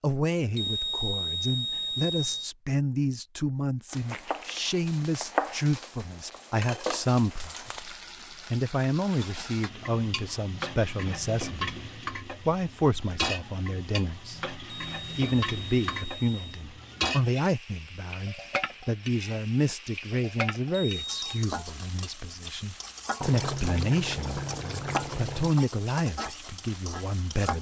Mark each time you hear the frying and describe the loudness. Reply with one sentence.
The frying can be heard from 3.9 to 27.5 s, at a steady volume.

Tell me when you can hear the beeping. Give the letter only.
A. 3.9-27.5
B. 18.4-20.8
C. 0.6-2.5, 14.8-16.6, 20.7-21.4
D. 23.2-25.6
C.